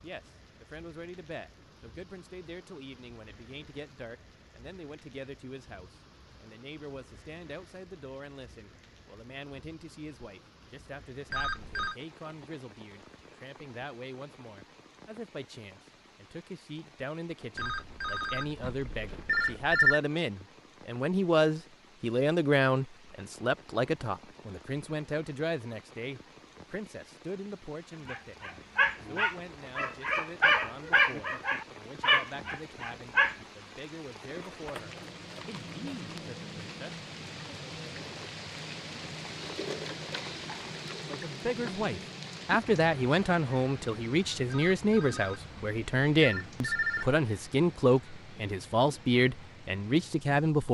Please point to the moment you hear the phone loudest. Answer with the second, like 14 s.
20 s.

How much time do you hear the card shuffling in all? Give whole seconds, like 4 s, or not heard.
2 s.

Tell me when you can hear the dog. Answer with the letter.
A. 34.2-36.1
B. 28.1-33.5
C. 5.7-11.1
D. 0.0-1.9
B.